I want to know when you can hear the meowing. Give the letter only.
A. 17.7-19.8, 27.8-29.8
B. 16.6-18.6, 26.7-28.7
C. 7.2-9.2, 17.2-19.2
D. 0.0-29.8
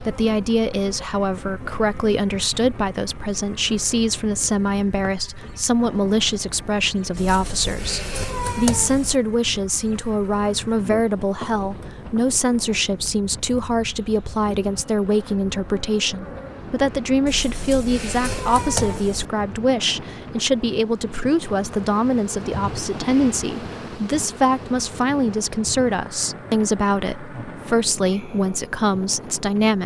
C.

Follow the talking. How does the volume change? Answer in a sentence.
The volume of the talking stays about the same.